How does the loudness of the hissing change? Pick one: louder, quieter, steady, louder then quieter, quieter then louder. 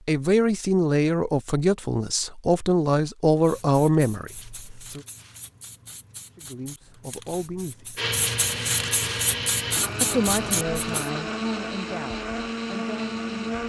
louder.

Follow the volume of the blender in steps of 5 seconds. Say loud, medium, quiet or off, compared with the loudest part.
off, loud, loud.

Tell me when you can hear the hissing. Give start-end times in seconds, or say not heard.
3.4-11.1.